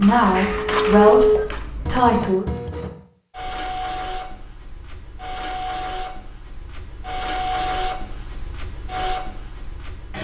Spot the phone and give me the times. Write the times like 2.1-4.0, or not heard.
0.3-1.4.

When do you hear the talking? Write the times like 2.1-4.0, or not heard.
0.0-2.5.